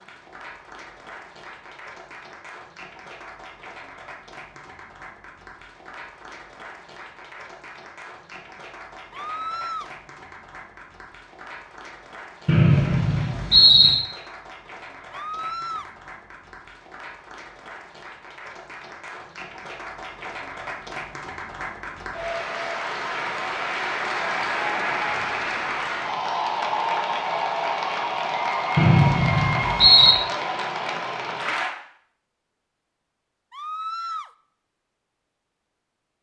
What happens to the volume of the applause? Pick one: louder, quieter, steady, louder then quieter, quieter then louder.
louder.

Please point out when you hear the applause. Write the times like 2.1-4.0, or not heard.
0.0-31.7.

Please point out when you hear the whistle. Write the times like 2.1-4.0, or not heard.
12.4-14.0, 28.8-30.1.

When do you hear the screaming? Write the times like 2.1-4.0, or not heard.
9.1-9.9, 15.1-15.9, 33.5-34.3.